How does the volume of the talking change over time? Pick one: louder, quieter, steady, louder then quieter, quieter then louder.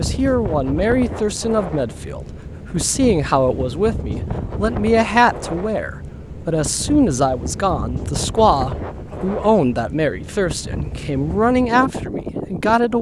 steady.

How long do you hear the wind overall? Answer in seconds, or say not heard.
13 s.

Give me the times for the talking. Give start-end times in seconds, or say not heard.
0.0-12.9.